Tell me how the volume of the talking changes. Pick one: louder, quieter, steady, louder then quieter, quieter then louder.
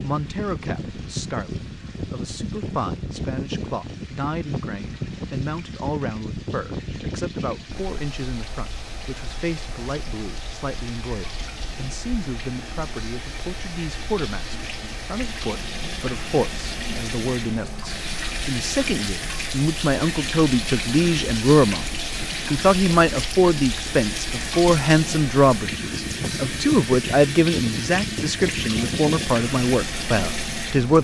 louder.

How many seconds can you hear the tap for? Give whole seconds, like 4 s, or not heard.
31 s.